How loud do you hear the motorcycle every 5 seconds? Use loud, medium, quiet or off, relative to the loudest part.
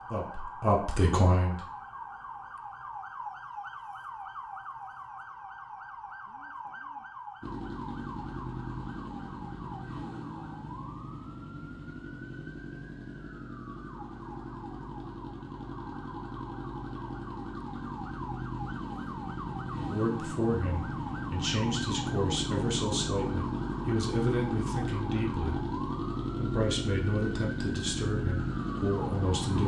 off, medium, medium, medium, loud, loud.